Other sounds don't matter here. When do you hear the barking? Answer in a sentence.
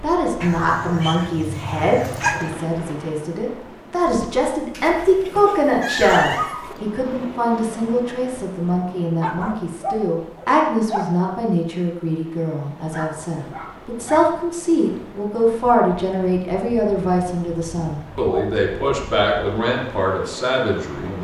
You can hear the barking from 0.4 to 2.5 s, from 4.7 to 6.8 s, from 9.2 to 11.1 s, from 12.9 to 14.3 s and from 18.2 to 19.6 s.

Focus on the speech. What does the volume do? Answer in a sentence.
The loudness of the speech stays about the same.